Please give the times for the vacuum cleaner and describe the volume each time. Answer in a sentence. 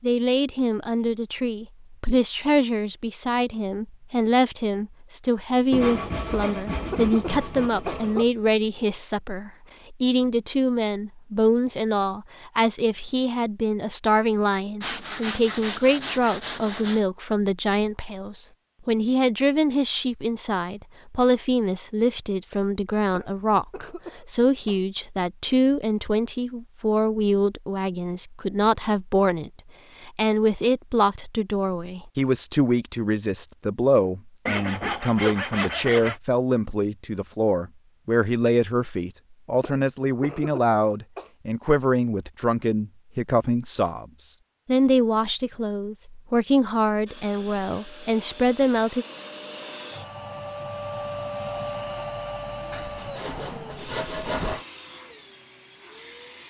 The vacuum cleaner can be heard from 47.0 to 56.4 s, getting louder then quieter.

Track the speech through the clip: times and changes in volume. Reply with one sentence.
The speech can be heard from 0.0 to 49.0 s, at a steady volume.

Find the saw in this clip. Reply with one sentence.
You can hear the saw from 5.7 to 8.3 s, from 14.8 to 17.0 s, from 34.5 to 36.2 s and from 52.7 to 54.6 s.